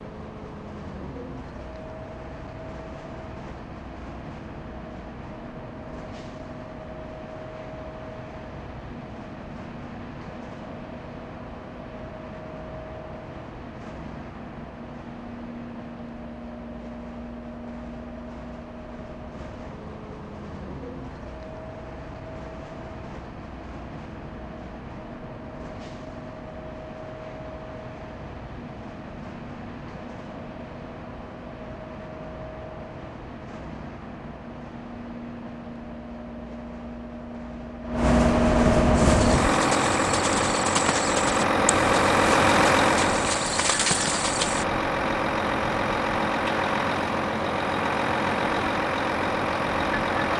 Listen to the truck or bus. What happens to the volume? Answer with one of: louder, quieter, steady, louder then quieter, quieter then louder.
louder.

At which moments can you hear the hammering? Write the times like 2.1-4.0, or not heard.
not heard.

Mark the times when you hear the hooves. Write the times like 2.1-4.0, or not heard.
39.0-44.6.